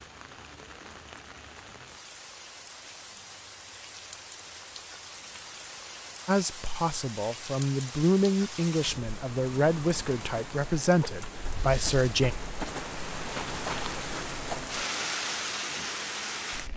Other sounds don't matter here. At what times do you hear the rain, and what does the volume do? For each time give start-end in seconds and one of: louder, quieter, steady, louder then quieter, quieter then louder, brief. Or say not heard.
0.0-16.7 louder.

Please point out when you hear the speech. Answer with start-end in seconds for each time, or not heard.
6.2-12.3.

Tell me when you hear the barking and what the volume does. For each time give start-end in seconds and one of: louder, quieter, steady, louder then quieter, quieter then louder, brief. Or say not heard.
not heard.